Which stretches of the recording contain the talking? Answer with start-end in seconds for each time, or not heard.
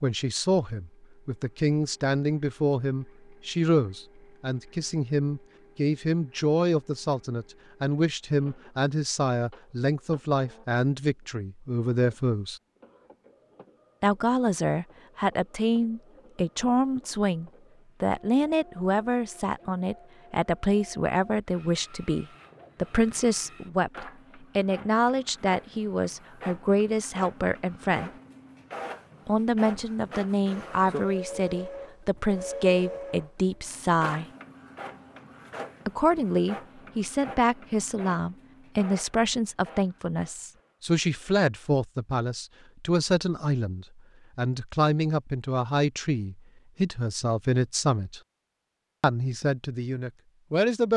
0.0-12.6, 14.0-28.1, 29.2-34.2, 35.9-48.2, 49.0-50.9.